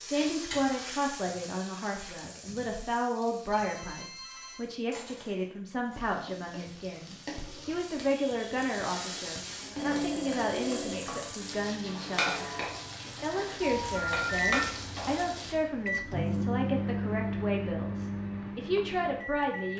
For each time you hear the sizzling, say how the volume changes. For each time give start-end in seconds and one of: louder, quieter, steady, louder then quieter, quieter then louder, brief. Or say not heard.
0.0-15.6 quieter then louder.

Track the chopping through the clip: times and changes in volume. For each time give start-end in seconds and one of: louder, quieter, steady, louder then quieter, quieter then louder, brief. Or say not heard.
not heard.